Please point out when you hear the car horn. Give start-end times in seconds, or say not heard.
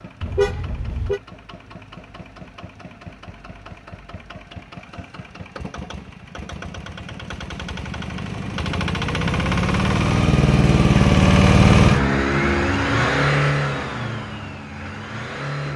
0.2-1.2.